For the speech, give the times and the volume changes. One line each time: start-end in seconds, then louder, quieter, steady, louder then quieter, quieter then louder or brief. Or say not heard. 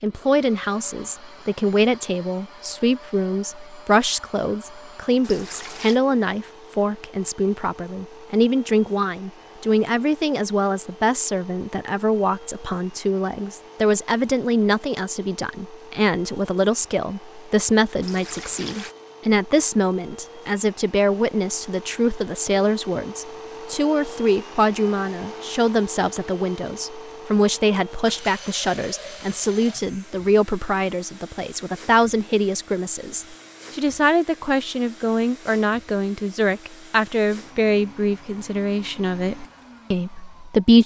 0.0-40.8 steady.